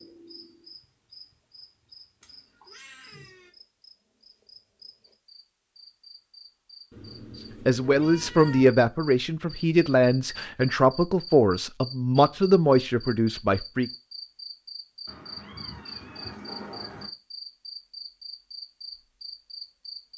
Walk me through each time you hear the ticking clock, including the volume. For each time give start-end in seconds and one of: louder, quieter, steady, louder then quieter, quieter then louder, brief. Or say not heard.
not heard.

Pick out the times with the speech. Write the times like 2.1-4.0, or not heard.
7.7-13.9.